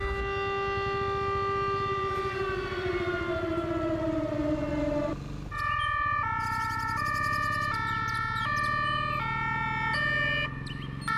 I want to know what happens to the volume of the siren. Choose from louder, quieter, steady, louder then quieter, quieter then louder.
steady.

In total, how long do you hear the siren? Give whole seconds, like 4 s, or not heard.
11 s.